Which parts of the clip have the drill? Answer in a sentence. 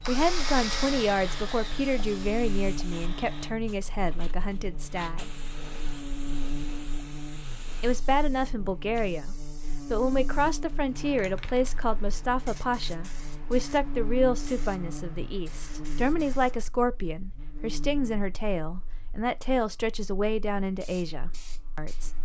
The drill can be heard from 0.0 to 3.5 s.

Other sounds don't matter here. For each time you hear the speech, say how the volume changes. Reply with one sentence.
The speech can be heard from 0.1 to 5.3 s, getting quieter; and from 7.8 to 22.1 s, at a steady volume.